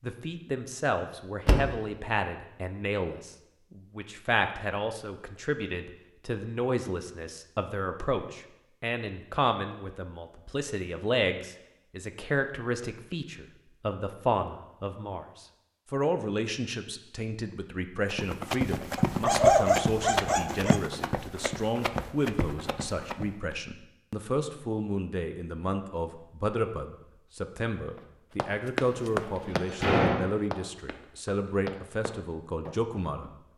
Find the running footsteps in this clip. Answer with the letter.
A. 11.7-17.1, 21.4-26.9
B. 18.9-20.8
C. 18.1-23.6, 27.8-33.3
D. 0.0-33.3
C.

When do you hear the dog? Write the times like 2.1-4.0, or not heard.
18.9-20.8.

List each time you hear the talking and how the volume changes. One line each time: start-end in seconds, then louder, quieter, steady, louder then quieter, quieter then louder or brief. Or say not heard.
0.0-33.3 steady.